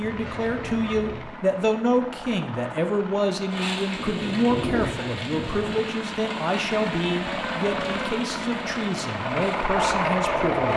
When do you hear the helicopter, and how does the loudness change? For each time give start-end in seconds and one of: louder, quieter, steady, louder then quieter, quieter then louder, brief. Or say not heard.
0.0-10.7 louder.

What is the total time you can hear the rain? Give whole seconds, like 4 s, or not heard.
7 s.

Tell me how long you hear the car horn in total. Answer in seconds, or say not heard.
2 s.